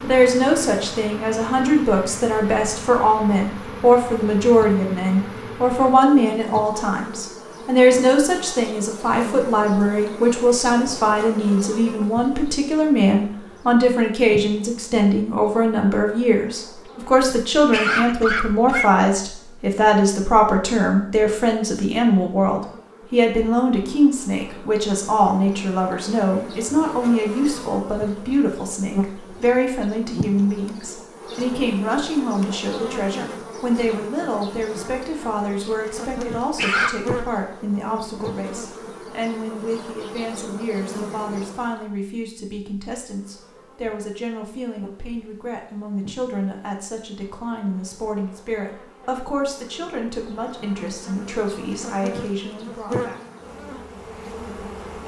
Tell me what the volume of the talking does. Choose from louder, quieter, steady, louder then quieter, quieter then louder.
quieter.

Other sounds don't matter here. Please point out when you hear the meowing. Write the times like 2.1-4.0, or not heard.
not heard.